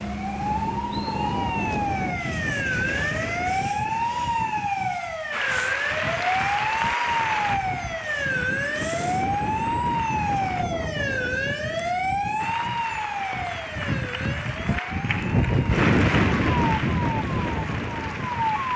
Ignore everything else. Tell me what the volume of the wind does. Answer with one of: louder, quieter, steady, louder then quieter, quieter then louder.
quieter then louder.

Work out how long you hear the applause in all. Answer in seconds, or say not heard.
12 s.